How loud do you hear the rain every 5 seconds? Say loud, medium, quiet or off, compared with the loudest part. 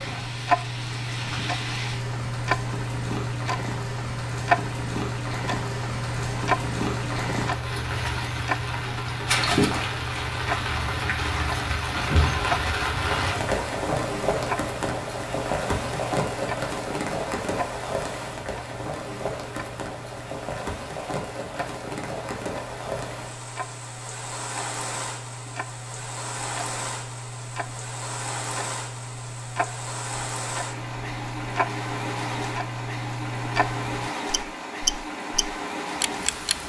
medium, loud, loud, loud, medium, medium, medium, medium.